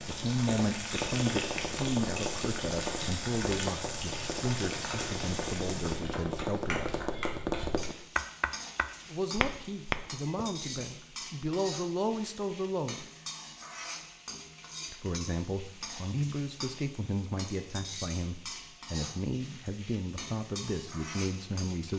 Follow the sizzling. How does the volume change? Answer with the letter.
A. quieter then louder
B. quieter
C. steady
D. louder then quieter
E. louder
B.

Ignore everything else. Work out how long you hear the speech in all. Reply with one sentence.
The speech can be heard for 18 seconds in total.